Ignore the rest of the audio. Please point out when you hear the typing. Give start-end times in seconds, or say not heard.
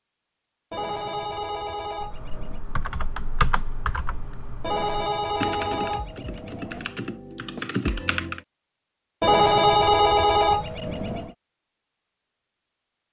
2.0-8.4.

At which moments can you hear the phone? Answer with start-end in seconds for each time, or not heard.
0.7-2.6, 4.6-6.9, 9.2-11.3.